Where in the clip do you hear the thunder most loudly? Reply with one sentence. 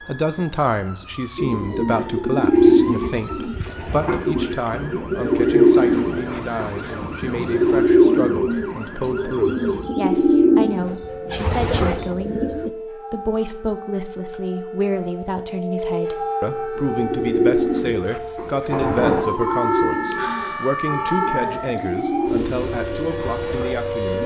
The loudest moment of the thunder is at 19 seconds.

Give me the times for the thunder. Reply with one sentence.
You can hear the thunder from 5.9 to 7.8 s and from 18.7 to 19.2 s.